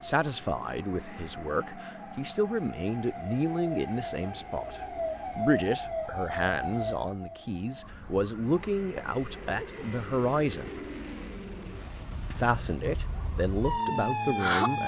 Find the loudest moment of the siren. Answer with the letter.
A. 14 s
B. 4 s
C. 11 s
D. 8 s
A.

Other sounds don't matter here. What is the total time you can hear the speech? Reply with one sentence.
The speech can be heard for 13 seconds in total.